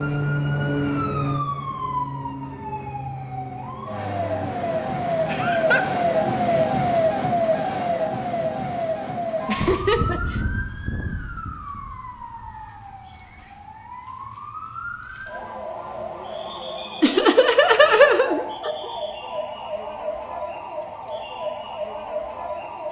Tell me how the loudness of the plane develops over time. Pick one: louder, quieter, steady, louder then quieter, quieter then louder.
quieter.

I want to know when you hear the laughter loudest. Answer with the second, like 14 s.
18 s.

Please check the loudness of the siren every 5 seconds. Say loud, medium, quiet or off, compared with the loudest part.
medium, loud, medium, medium, medium.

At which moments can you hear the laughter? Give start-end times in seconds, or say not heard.
5.2-5.8, 9.4-10.4, 17.0-18.9.